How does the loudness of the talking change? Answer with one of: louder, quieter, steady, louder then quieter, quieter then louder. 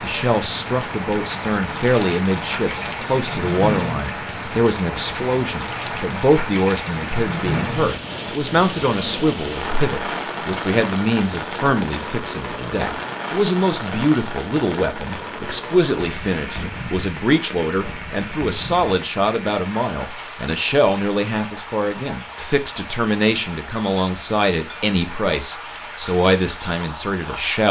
steady.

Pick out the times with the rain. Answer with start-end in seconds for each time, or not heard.
0.0-27.6.